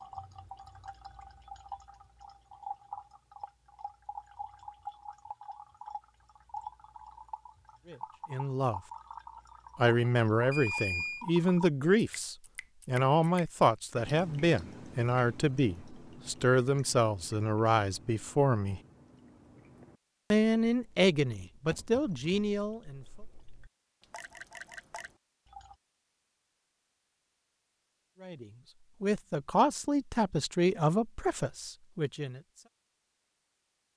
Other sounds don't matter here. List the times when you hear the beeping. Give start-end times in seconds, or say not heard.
10.5-11.2.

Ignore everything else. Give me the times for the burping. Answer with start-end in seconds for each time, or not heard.
not heard.